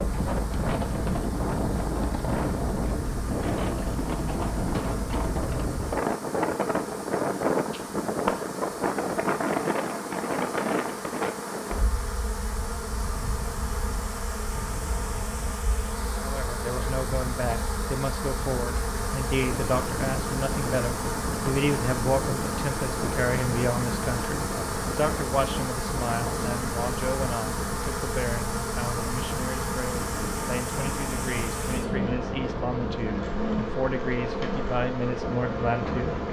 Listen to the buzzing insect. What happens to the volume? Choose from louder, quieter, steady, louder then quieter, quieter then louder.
louder.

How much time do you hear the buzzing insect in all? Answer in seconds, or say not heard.
36 s.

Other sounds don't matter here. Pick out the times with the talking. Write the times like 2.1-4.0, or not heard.
16.2-36.2.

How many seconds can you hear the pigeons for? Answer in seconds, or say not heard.
not heard.